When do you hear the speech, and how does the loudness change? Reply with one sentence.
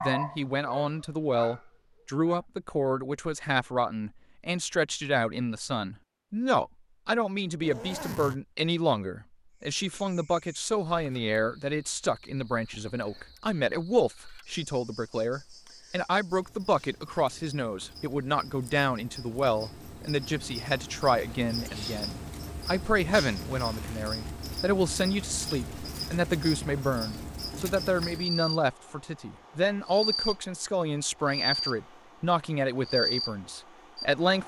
You can hear the speech from 0.0 to 34.4 s, at a steady volume.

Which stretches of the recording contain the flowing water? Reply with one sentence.
The flowing water can't be heard in this clip.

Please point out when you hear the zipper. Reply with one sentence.
You can hear the zipper from 7.6 to 8.4 s and from 23.5 to 24.1 s.